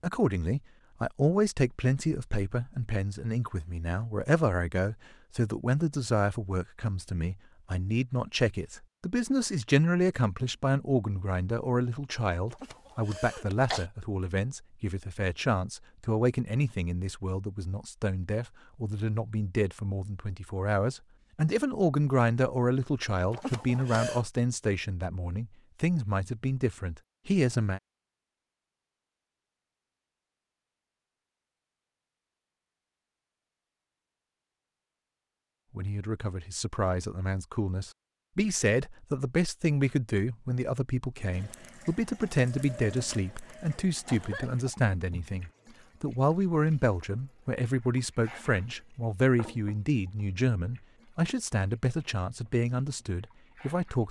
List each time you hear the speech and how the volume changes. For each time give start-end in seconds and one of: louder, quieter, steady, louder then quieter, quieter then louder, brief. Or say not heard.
0.0-27.8 steady
35.8-54.0 steady.